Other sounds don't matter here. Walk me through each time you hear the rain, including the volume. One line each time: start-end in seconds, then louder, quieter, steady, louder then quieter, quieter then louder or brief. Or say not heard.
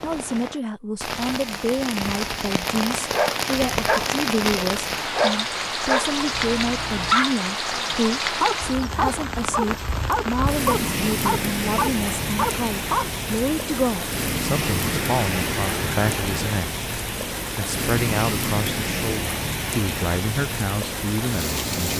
0.0-21.9 steady.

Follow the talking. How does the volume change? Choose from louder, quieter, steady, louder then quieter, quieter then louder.
steady.